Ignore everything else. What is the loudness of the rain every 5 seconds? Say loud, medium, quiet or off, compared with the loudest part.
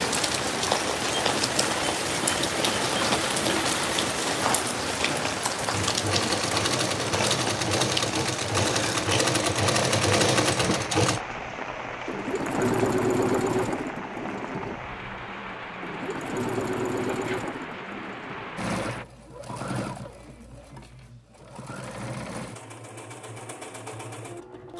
loud, loud, medium, medium, off.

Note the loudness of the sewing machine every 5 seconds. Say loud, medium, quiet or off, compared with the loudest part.
medium, loud, loud, medium, quiet.